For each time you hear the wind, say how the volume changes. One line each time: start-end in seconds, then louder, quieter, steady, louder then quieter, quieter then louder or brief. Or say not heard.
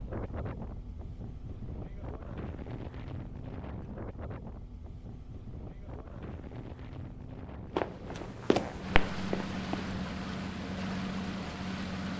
0.0-12.1 steady.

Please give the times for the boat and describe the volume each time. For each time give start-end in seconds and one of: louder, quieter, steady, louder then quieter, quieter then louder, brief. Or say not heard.
0.0-12.1 louder.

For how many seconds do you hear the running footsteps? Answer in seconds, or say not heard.
2 s.